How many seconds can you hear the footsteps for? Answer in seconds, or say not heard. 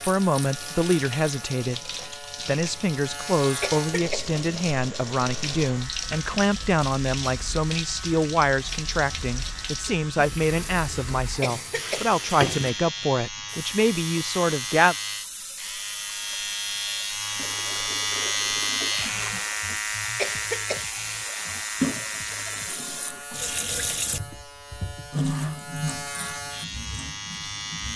not heard.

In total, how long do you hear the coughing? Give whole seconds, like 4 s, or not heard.
2 s.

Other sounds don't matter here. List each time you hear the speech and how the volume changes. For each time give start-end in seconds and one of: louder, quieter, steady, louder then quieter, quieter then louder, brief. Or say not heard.
0.1-1.8 brief
2.5-14.9 steady.